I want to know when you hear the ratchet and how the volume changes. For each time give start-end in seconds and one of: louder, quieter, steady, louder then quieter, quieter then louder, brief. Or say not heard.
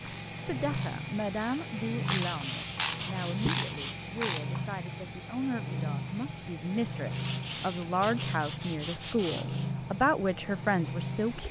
0.0-4.6 louder.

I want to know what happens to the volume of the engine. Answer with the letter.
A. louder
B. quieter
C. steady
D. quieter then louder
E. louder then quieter
C.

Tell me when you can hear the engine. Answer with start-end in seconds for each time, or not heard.
0.0-11.4.